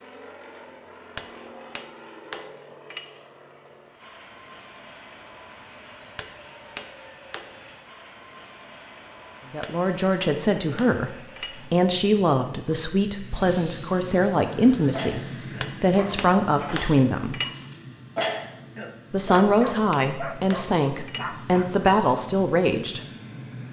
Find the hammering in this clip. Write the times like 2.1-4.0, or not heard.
1.1-3.0, 6.2-7.5, 9.6-11.5, 15.6-17.4, 19.4-21.2.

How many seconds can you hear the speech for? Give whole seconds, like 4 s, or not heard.
11 s.